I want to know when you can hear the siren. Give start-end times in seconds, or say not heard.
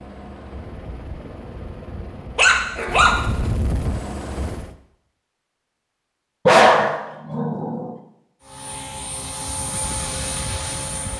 not heard.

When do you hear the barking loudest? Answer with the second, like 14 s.
7 s.